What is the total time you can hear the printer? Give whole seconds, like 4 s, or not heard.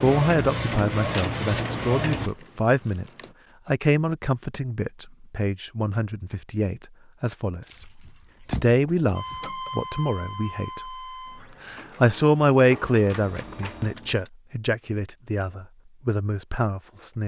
7 s.